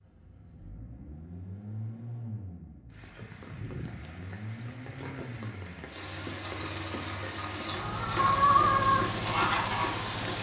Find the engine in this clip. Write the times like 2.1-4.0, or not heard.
0.0-10.3.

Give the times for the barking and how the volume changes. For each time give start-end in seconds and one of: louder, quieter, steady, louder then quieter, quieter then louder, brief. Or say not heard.
not heard.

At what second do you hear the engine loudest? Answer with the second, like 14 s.
9 s.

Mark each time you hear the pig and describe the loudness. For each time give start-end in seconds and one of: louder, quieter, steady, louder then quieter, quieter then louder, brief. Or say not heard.
not heard.